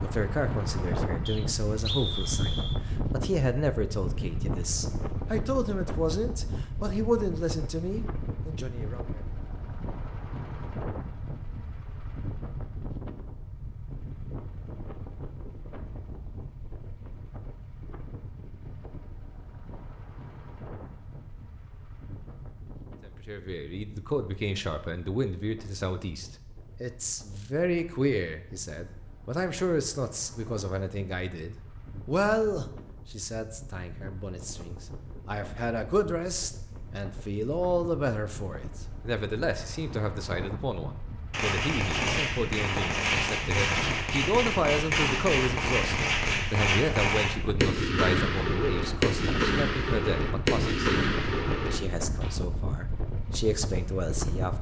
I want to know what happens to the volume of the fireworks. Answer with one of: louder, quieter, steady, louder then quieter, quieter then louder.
steady.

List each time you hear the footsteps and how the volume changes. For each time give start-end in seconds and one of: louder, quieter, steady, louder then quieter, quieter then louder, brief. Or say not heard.
not heard.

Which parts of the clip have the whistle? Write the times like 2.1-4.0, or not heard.
1.2-2.8.